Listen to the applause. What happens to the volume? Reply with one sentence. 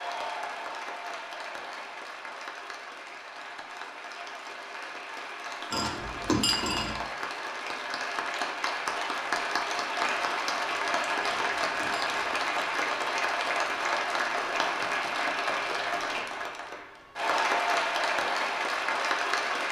The loudness of the applause goes up.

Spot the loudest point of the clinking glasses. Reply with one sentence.
The volume of the clinking glasses peaks at 6 seconds.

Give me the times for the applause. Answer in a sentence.
You can hear the applause from 0.0 to 19.6 s.